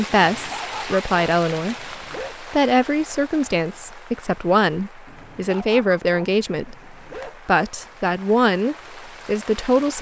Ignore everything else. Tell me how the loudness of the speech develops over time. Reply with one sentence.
The loudness of the speech stays about the same.